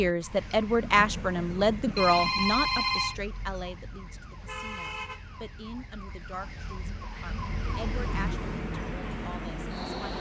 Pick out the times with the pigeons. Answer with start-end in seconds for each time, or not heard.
not heard.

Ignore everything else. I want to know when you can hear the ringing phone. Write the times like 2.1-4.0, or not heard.
1.9-3.1.